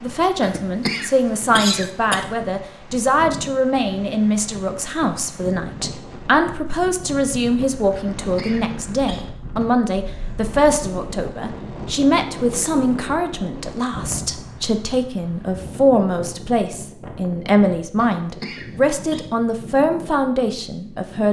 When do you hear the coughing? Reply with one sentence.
The coughing can be heard from 0.4 to 2.2 s, from 8.0 to 9.2 s and from 17.9 to 19.2 s.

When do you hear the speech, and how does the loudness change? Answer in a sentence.
The speech can be heard from 0.0 to 21.2 s, at a steady volume.